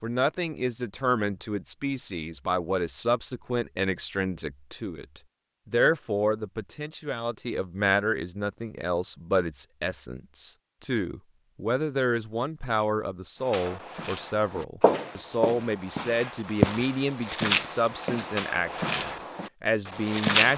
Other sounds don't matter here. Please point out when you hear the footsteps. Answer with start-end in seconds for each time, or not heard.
13.4-20.5.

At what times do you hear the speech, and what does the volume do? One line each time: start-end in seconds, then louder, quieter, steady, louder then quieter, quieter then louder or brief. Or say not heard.
0.0-20.5 steady.